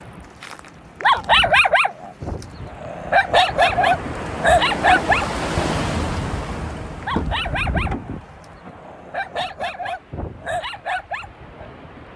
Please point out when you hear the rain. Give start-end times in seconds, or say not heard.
0.0-12.1.